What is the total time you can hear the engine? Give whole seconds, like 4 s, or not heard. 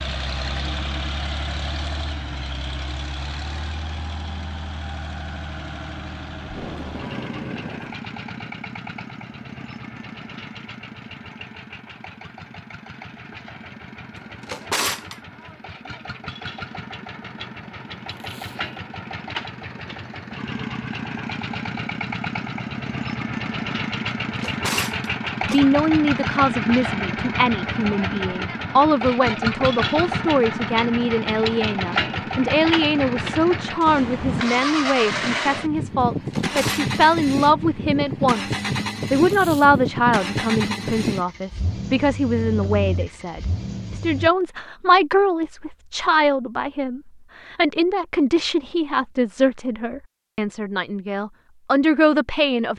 44 s.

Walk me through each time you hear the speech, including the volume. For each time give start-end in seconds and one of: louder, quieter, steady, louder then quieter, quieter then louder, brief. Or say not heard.
25.4-52.7 steady.